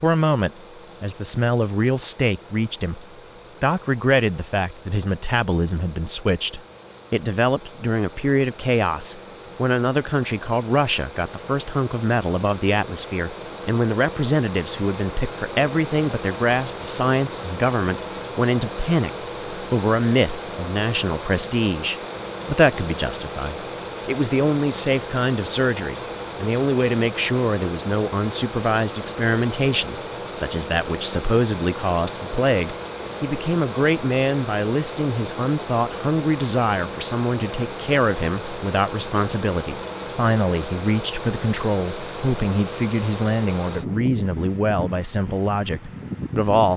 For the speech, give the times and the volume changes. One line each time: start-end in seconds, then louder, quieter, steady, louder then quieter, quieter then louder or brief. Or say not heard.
0.0-46.7 steady.